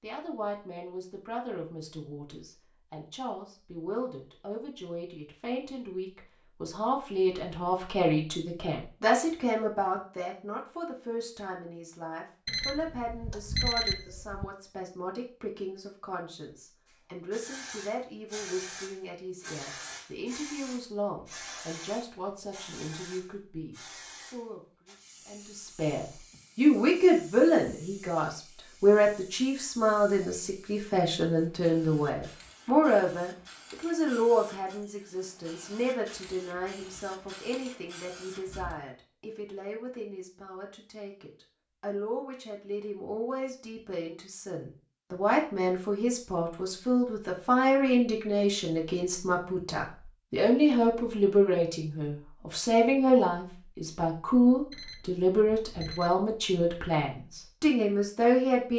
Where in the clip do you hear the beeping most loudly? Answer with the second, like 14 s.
14 s.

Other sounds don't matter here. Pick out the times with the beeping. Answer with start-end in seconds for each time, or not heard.
12.4-14.4, 54.7-56.1.